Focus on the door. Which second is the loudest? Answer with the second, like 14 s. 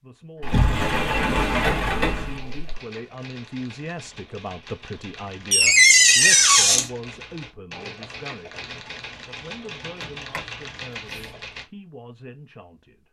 6 s.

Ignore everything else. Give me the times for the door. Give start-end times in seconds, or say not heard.
0.4-2.5, 5.5-6.9, 9.8-11.3.